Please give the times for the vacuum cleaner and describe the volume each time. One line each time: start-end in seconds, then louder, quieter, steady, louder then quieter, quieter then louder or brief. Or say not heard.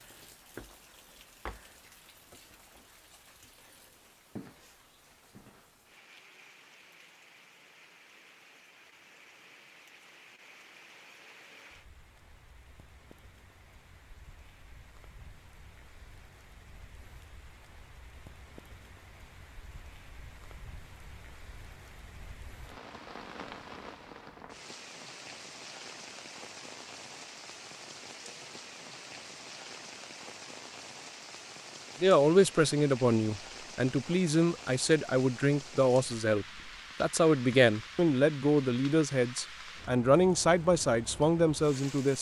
not heard.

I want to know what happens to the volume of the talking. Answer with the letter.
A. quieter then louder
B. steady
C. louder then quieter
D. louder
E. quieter
B.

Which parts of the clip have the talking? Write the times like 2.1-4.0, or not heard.
32.0-42.1.